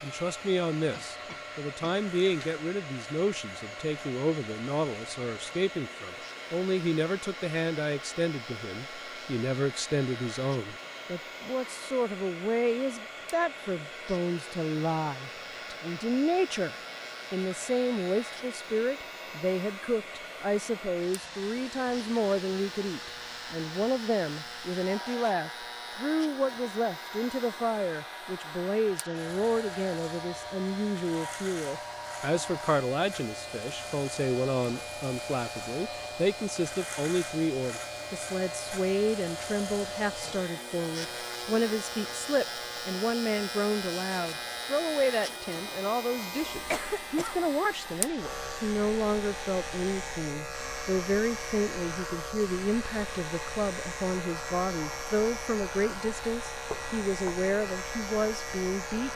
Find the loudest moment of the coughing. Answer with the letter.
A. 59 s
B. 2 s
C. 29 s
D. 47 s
D.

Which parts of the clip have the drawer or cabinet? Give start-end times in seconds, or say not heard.
56.7-57.4.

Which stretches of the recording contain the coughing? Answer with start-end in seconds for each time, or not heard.
0.9-2.0, 46.5-47.4.